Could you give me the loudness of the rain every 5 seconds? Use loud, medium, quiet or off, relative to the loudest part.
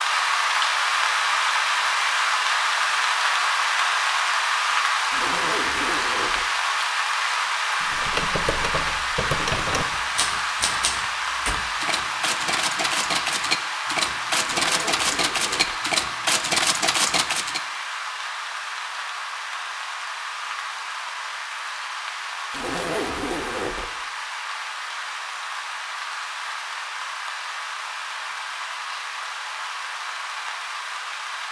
loud, loud, medium, medium, medium, medium, medium.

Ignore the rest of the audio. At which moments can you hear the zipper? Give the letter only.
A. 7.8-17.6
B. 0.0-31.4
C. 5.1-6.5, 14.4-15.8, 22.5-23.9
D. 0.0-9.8
C.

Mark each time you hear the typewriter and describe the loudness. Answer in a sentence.
You can hear the typewriter from 7.8 to 17.6 s, getting louder.